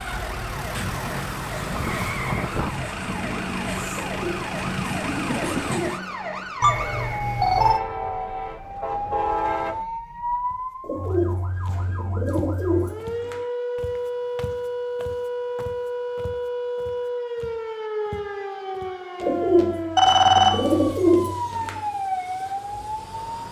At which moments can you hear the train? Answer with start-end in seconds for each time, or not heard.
0.0-9.8.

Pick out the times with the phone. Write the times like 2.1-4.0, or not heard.
6.6-7.8, 19.9-20.9.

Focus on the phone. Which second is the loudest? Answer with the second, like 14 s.
20 s.